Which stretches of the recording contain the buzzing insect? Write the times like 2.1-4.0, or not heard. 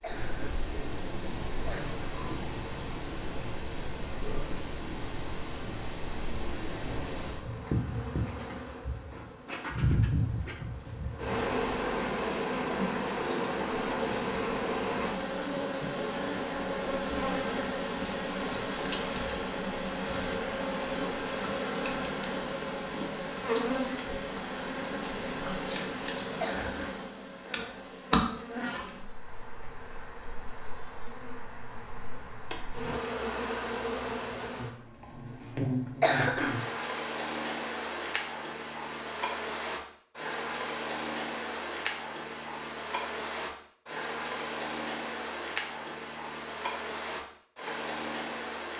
0.0-48.7.